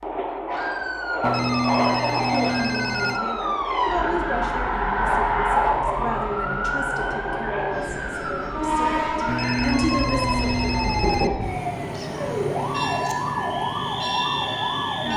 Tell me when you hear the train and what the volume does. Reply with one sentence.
The train can be heard from 0.0 to 15.1 s, at a steady volume.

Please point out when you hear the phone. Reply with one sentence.
You can hear the phone from 1.2 to 3.2 s and from 9.2 to 11.3 s.